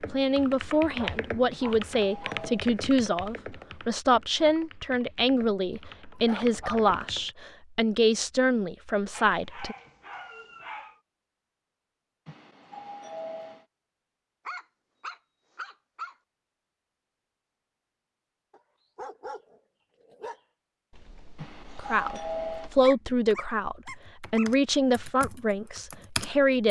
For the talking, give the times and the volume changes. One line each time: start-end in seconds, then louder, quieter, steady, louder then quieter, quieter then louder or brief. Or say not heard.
0.1-9.8 steady
21.8-26.6 quieter.